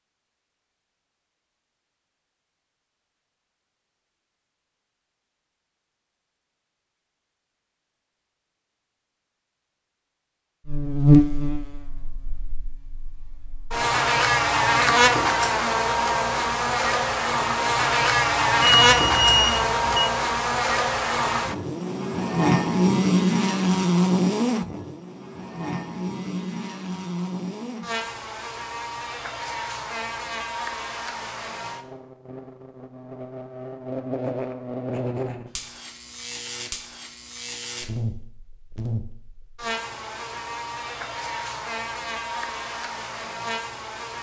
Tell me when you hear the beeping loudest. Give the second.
19 s.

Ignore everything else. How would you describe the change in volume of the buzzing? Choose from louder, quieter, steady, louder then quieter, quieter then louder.
quieter.